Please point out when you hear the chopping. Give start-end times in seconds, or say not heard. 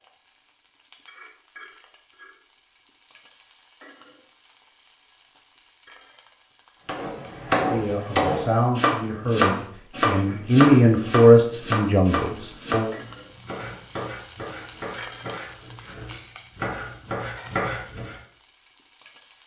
6.8-18.1.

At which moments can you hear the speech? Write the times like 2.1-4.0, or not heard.
7.5-12.9.